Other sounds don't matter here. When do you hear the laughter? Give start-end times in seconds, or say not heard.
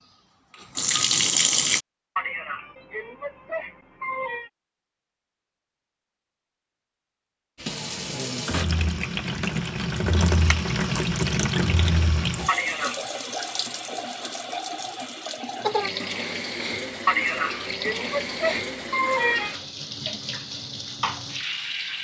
2.1-4.5, 12.4-13.1, 17.1-19.6.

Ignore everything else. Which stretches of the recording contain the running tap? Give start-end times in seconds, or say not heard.
0.0-1.8, 7.5-22.0.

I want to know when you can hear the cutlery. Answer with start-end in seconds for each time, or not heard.
not heard.